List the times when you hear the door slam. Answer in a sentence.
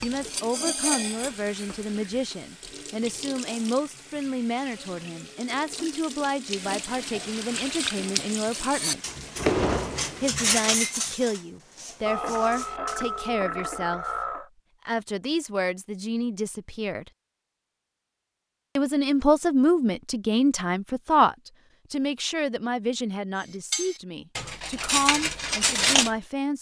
The door slam can be heard from 8.6 to 10.2 s.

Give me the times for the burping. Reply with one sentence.
You can hear the burping from 12.1 to 14.5 s.